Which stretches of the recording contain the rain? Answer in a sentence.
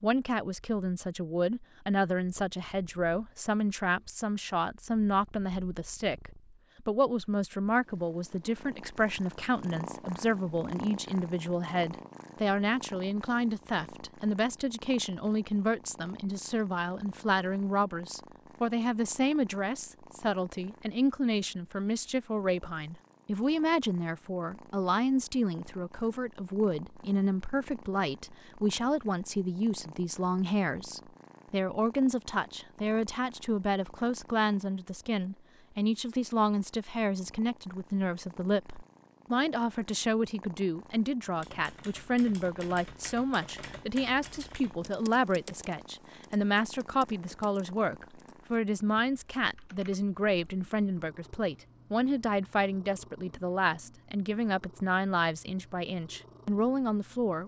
The rain can't be heard in this clip.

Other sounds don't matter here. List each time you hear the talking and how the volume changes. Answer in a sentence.
You can hear the talking from 0.0 to 57.4 s, at a steady volume.